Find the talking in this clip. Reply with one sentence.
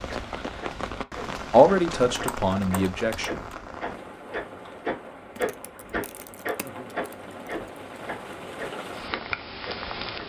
You can hear the talking from 1.5 to 3.4 s.